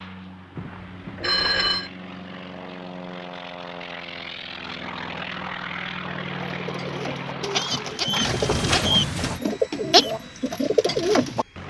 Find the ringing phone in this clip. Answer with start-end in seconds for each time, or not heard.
0.6-1.9, 8.2-9.4.